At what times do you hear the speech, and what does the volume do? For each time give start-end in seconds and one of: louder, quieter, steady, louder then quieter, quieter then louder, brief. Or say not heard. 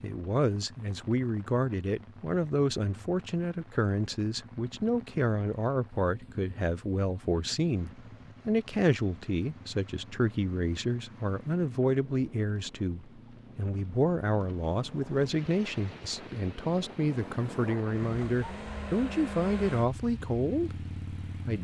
0.0-21.5 steady.